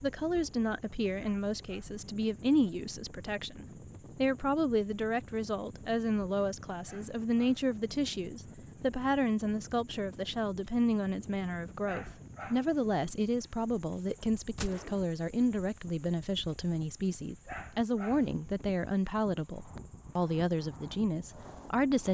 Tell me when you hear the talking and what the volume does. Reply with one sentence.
The talking can be heard from 0.0 to 22.0 s, at a steady volume.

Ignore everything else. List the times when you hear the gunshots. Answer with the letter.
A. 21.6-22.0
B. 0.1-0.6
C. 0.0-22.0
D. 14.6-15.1
D.